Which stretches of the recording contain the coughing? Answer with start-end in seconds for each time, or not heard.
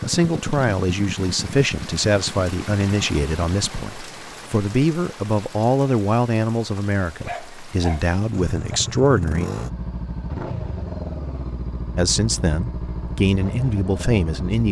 not heard.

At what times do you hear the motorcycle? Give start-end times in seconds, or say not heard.
0.0-3.9, 8.3-14.6.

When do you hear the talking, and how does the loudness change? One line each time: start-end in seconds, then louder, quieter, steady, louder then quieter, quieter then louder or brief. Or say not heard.
0.0-9.4 steady
11.9-14.6 brief.